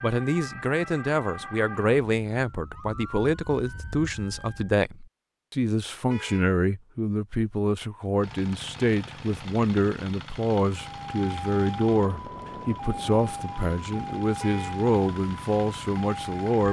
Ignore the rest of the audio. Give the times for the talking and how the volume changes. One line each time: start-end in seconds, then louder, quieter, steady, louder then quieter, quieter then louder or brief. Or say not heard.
0.0-16.6 steady.